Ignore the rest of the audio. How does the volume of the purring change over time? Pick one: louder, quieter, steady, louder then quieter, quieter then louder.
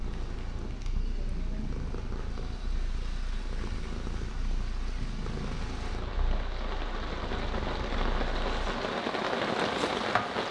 steady.